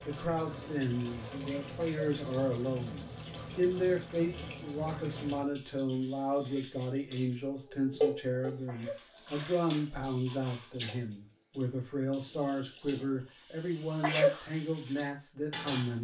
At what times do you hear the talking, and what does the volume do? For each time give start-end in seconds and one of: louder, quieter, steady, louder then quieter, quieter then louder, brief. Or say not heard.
0.0-15.9 steady.